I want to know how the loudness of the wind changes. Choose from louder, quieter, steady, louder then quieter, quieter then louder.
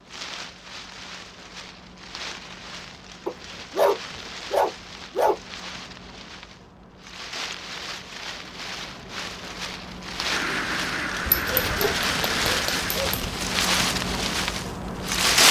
louder.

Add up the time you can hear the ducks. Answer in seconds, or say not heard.
3 s.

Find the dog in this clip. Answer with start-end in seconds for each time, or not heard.
3.2-5.4, 11.2-13.3.